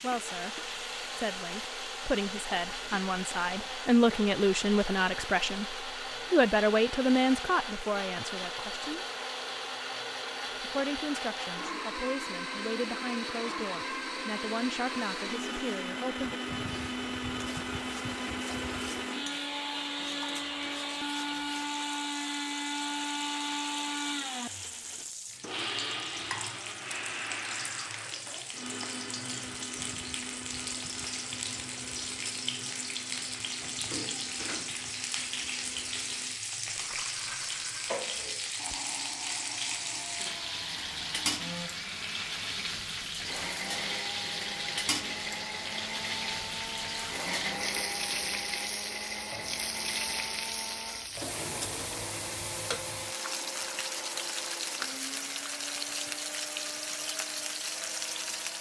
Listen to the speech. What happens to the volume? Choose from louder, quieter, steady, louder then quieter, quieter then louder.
louder then quieter.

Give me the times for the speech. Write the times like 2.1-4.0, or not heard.
0.0-9.1, 10.6-16.4.